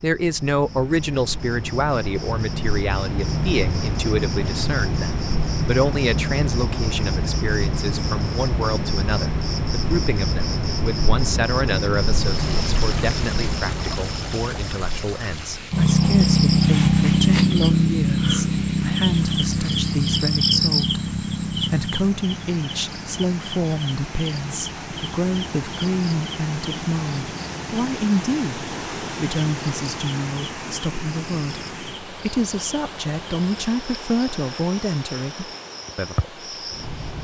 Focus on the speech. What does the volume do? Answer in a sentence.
The loudness of the speech stays about the same.